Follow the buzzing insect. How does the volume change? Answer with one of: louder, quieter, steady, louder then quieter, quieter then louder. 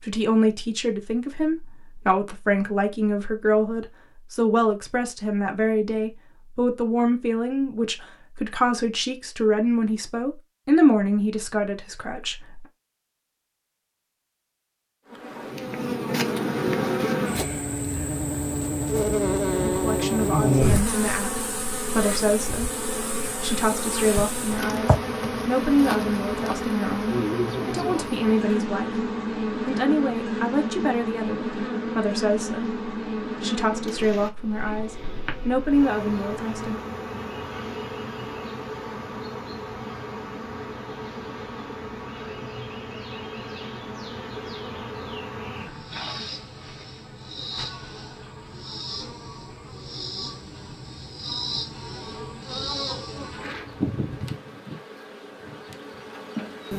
quieter.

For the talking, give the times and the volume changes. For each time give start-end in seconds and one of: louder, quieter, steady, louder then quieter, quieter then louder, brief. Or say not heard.
0.0-12.7 steady
19.6-36.8 steady.